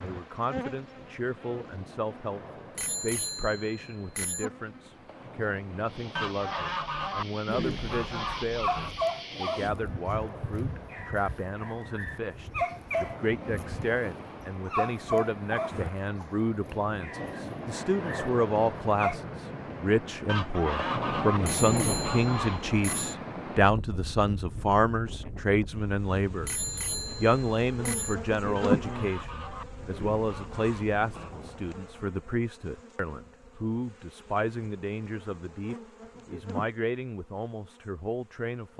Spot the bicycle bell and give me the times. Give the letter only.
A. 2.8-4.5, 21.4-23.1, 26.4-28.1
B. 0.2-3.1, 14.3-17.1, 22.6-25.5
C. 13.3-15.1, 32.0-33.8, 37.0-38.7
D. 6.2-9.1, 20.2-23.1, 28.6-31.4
A.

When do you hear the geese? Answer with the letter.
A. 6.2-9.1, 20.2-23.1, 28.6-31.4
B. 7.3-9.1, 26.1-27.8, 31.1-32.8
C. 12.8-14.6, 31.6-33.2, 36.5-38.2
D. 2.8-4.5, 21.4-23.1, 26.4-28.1
A.